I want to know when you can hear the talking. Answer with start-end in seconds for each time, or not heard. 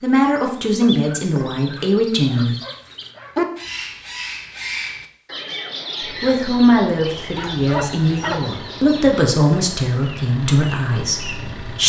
0.0-2.5, 6.2-11.8.